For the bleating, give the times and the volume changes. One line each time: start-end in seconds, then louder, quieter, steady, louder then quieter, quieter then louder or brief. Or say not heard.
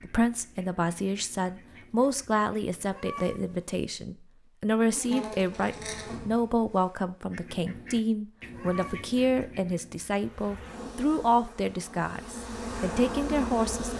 not heard.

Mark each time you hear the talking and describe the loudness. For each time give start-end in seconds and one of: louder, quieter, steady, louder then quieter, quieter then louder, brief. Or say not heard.
0.0-13.9 steady.